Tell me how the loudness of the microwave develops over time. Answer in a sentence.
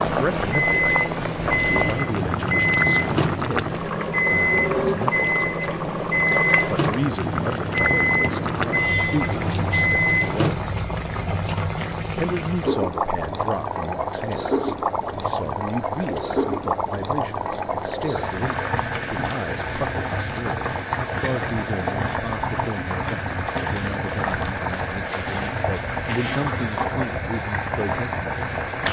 The volume of the microwave stays about the same.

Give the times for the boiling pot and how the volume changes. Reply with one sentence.
You can hear the boiling pot from 0.0 to 28.8 s, at a steady volume.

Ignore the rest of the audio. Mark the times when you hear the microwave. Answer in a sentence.
You can hear the microwave from 0.0 to 10.7 s.